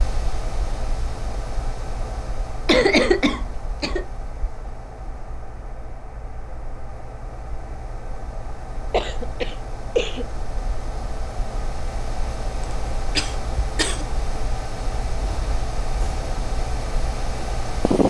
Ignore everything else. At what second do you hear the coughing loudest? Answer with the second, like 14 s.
3 s.